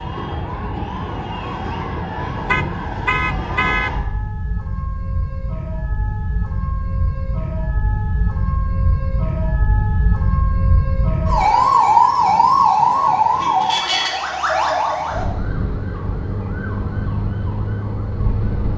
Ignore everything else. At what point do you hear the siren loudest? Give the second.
12 s.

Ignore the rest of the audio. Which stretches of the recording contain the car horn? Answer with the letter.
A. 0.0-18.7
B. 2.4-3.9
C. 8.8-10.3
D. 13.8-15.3
B.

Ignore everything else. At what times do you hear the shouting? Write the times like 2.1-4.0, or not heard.
not heard.